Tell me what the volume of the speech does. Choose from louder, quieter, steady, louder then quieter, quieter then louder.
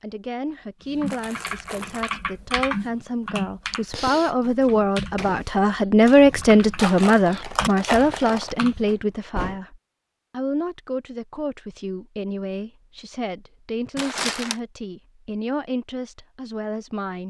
louder then quieter.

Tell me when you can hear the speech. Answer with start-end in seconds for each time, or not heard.
0.0-17.2.